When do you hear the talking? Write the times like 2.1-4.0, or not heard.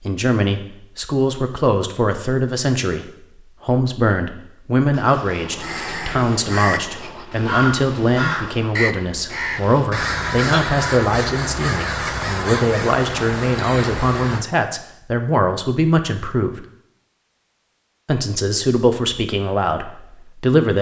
0.0-16.6, 18.1-20.7.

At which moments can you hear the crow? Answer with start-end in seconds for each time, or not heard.
5.5-14.4.